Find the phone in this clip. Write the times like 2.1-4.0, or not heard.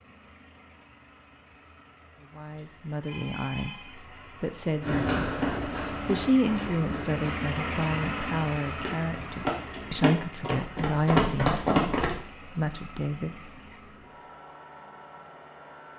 2.5-4.0.